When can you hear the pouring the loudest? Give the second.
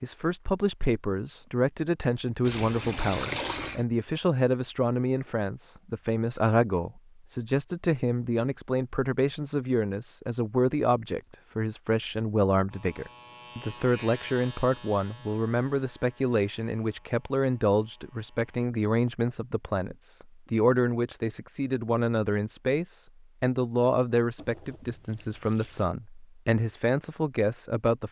3 s.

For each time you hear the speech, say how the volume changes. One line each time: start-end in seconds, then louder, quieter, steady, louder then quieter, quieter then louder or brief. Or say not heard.
0.0-28.0 steady.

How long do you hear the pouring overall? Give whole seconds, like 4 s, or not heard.
3 s.